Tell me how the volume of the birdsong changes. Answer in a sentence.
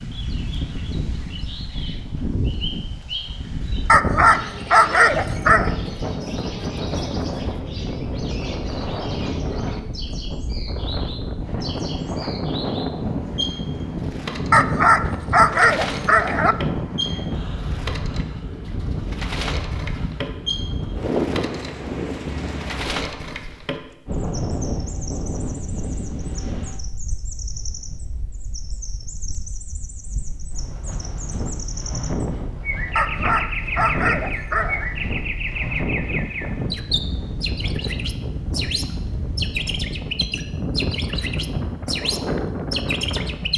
The volume of the birdsong goes up.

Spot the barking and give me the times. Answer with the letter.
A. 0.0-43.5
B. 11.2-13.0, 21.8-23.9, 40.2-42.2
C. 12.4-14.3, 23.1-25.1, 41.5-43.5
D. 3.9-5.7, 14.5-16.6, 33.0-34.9
D.